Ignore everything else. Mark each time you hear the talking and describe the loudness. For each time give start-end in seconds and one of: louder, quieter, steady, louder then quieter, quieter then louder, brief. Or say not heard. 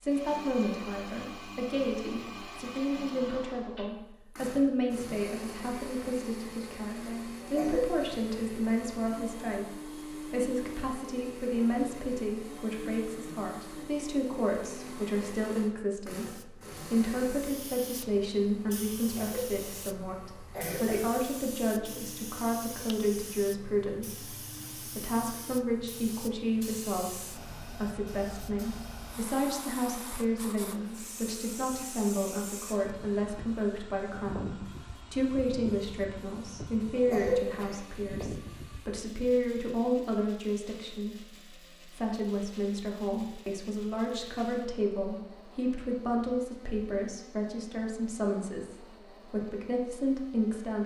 0.0-50.8 steady.